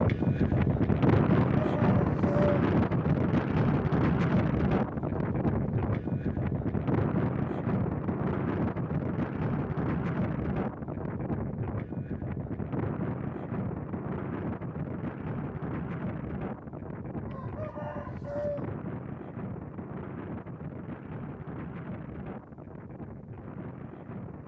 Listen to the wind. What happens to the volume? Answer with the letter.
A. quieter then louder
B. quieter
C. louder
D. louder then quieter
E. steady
B.